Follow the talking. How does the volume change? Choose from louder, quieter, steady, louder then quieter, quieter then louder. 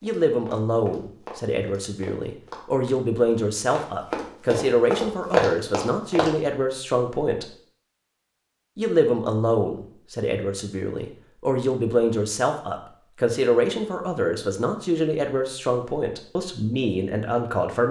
steady.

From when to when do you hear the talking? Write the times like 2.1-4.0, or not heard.
0.0-7.5, 8.8-17.8.